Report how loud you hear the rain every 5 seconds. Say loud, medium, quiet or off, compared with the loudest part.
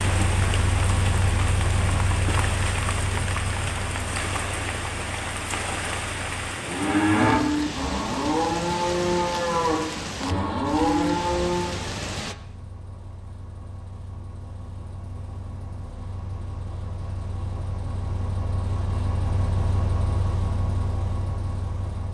loud, loud, loud, off, off.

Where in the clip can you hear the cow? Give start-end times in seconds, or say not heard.
6.4-11.8.